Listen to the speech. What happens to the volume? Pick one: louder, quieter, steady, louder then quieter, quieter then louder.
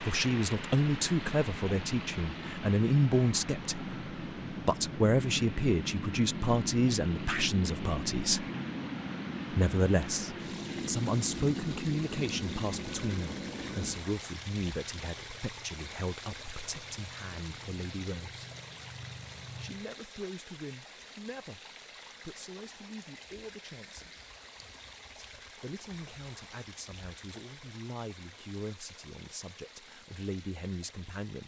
quieter.